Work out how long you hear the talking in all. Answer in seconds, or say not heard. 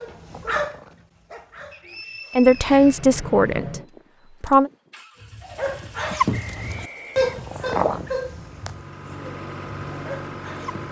2 s.